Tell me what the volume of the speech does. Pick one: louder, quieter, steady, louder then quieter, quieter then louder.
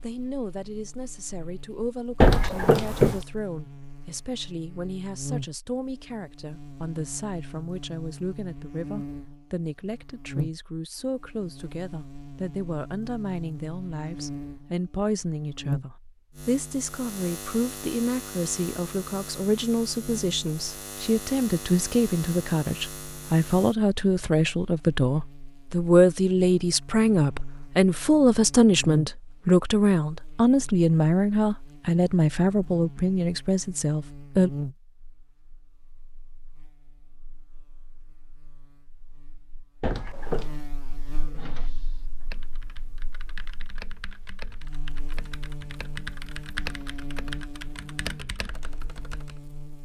louder.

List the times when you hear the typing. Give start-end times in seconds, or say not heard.
41.2-49.4.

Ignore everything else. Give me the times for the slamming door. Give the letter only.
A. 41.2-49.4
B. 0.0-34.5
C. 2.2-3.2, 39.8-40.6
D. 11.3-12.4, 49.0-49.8
C.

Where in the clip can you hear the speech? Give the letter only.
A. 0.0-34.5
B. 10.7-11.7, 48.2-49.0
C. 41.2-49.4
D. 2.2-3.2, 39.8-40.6
A.